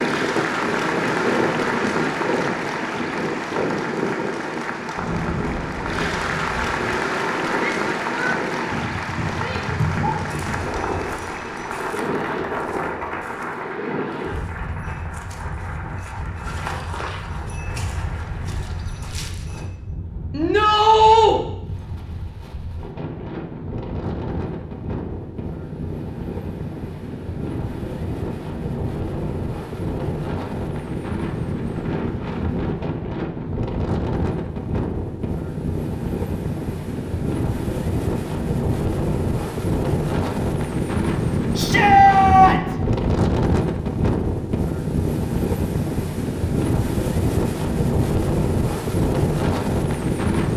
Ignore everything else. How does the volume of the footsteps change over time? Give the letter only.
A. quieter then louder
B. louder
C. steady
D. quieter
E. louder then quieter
A.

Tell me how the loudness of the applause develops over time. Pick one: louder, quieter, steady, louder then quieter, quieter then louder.
quieter.